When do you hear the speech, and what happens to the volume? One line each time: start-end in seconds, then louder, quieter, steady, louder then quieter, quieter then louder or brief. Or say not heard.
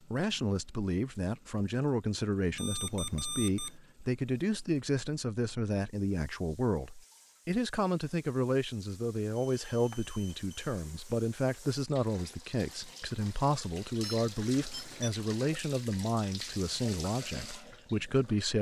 0.1-18.5 steady.